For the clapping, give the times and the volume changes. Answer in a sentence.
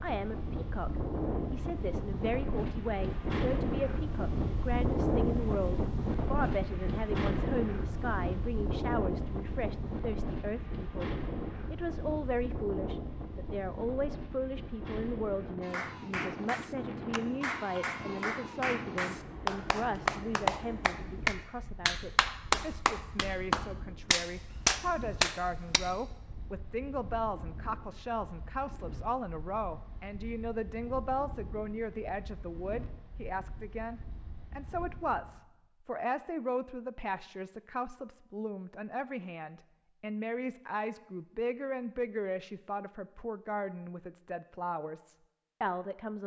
The clapping can be heard from 15.6 to 25.8 s, getting louder.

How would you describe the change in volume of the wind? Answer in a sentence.
The volume of the wind goes down.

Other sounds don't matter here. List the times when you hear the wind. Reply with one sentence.
The wind can be heard from 0.0 to 35.4 s.